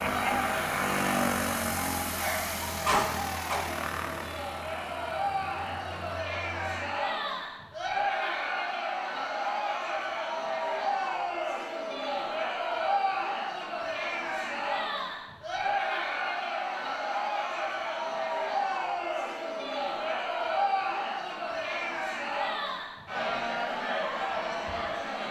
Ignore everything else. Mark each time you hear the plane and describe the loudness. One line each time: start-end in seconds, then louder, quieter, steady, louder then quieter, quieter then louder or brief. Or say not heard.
0.0-7.0 quieter.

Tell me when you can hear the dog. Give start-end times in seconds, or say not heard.
2.1-3.6.